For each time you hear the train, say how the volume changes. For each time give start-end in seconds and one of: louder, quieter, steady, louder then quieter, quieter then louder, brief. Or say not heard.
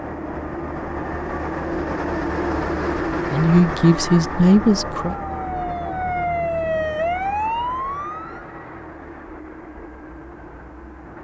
0.0-11.2 quieter.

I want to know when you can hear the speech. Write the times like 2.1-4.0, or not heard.
3.3-5.2.